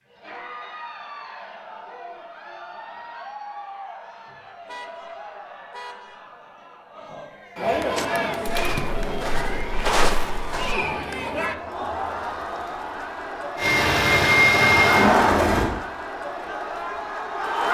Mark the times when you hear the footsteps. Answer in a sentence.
You can hear the footsteps from 8.0 to 10.8 s.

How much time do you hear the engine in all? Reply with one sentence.
You can hear the engine for 2 seconds altogether.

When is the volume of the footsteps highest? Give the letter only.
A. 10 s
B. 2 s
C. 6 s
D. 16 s
A.